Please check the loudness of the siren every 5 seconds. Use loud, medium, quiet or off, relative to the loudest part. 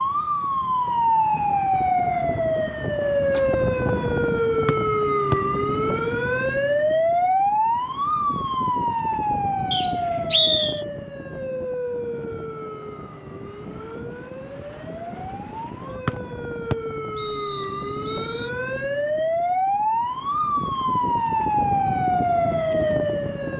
loud, loud, medium, medium, loud.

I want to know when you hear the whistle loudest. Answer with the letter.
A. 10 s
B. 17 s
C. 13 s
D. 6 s
A.